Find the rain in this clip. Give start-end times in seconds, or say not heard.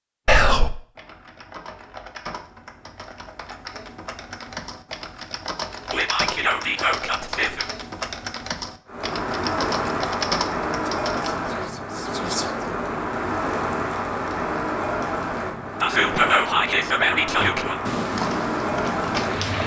8.8-19.6.